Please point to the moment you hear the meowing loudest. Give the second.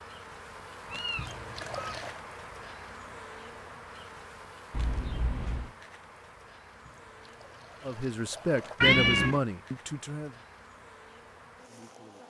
9 s.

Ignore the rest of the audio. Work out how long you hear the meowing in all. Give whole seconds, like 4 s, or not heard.
3 s.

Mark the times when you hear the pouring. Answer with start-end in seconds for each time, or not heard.
1.1-2.2, 6.8-8.8.